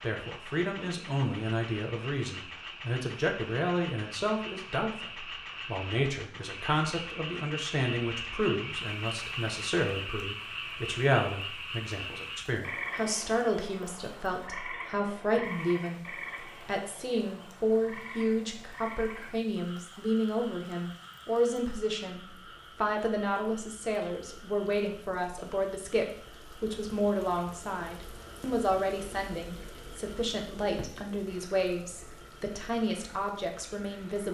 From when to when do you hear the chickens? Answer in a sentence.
The chickens can't be heard in this clip.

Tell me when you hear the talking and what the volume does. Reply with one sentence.
You can hear the talking from 0.0 to 34.3 s, at a steady volume.